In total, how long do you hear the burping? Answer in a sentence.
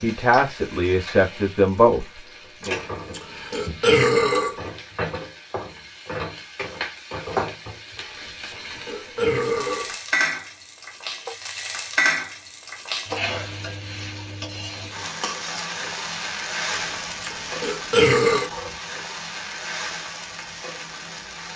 The burping can be heard for 6 seconds in total.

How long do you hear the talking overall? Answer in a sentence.
The talking can be heard for 3 seconds in total.